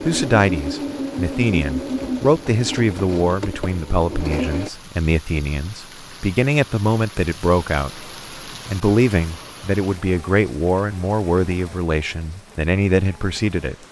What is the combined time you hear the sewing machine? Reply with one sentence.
The sewing machine can be heard for 5 seconds in total.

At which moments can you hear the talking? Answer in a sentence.
You can hear the talking from 0.0 to 13.8 s.